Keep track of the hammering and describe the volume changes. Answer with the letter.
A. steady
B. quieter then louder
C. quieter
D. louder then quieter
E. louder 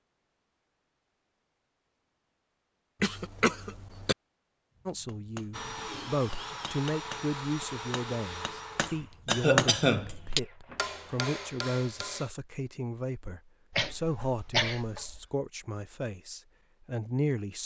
D.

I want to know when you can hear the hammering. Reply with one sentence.
The hammering can be heard from 4.8 to 12.3 s.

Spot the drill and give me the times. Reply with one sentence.
You can hear the drill from 5.5 to 11.3 s.